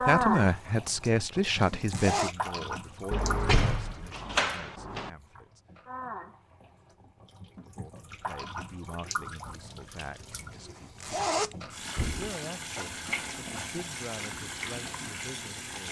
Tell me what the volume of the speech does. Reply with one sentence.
The loudness of the speech goes down.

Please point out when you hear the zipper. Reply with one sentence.
The zipper can be heard from 1.4 to 2.4 s and from 10.5 to 11.6 s.